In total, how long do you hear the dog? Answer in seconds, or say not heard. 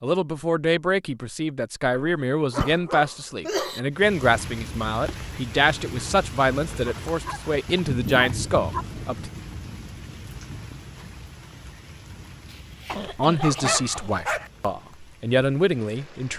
6 s.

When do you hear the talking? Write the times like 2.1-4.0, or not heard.
0.0-9.3, 13.0-16.3.